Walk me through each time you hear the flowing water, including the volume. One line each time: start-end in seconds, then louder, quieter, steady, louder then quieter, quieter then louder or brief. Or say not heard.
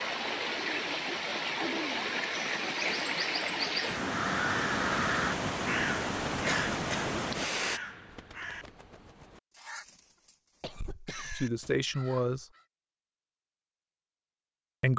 0.0-7.8 steady.